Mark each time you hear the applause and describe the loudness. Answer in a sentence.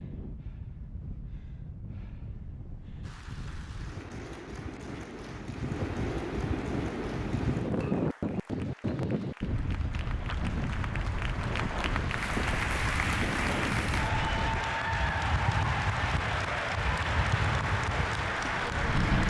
You can hear the applause from 3.0 to 19.2 s, getting louder.